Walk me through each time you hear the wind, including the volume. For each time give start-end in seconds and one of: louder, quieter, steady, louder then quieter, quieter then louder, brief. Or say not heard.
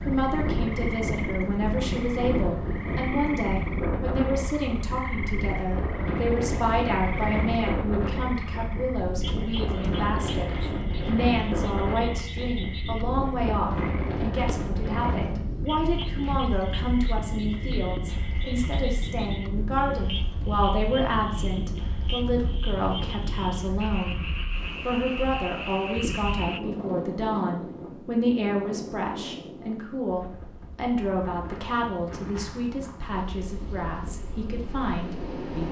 0.0-35.6 quieter.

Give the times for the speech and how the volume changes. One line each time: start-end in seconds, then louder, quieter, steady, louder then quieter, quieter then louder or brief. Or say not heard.
0.0-35.6 steady.